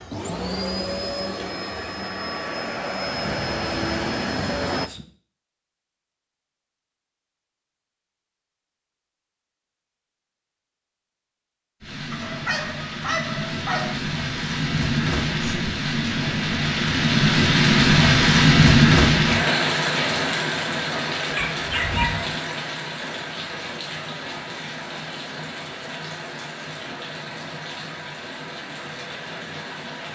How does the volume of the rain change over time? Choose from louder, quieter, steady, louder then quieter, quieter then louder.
louder then quieter.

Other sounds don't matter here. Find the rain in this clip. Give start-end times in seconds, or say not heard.
11.8-30.1.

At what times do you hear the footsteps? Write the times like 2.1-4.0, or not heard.
not heard.